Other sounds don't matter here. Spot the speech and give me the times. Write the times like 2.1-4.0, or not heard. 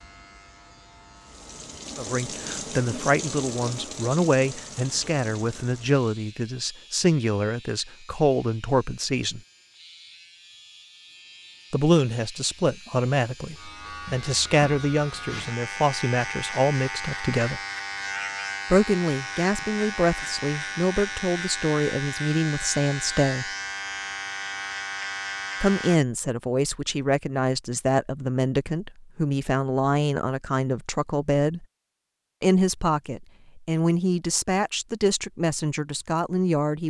1.9-9.4, 11.7-17.6, 18.6-23.5, 25.6-31.6, 32.4-36.8.